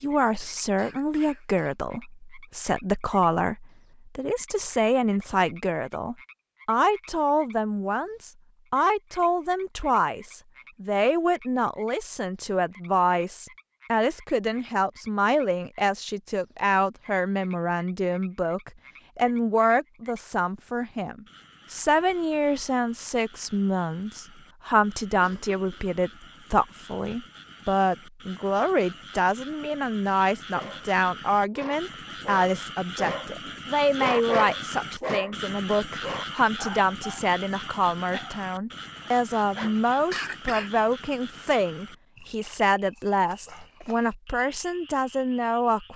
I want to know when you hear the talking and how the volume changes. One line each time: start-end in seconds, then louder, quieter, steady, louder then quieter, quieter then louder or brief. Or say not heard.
0.0-45.9 steady.